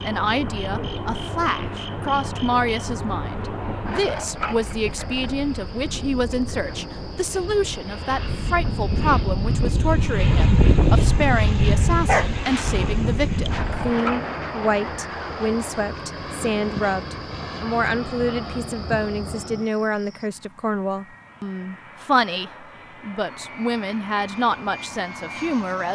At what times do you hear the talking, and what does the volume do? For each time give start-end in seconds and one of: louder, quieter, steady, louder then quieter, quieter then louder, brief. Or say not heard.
0.0-25.9 steady.